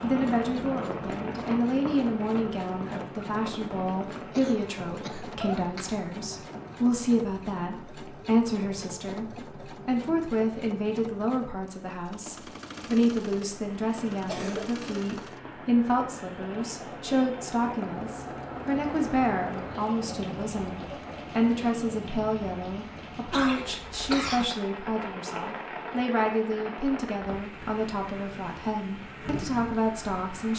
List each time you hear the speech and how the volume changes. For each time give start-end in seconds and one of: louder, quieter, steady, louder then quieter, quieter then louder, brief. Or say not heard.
0.0-30.5 steady.